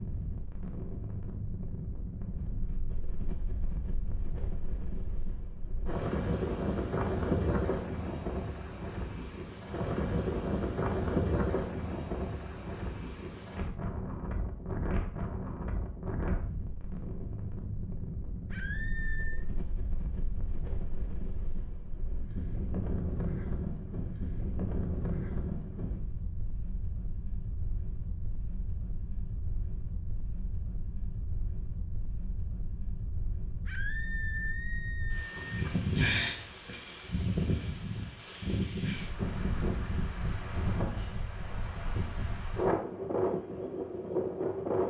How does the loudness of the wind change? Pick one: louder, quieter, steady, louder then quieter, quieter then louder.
quieter then louder.